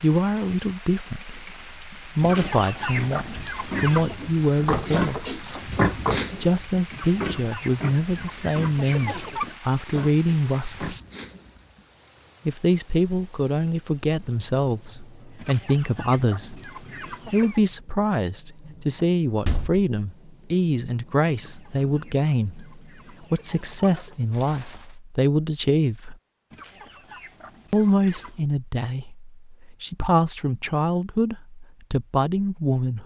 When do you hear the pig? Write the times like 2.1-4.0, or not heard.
1.2-11.8.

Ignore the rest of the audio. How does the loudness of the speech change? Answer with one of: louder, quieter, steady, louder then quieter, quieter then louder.
steady.